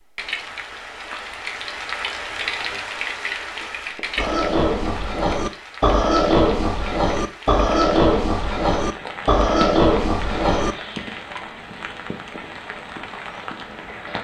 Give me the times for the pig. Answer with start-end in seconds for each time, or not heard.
4.2-10.8.